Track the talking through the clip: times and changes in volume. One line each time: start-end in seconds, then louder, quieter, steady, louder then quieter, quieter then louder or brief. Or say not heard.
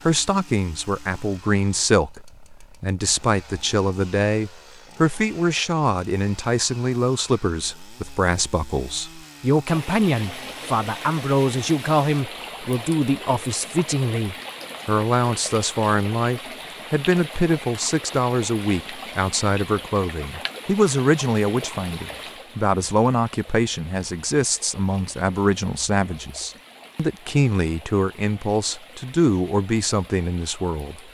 0.1-31.0 steady.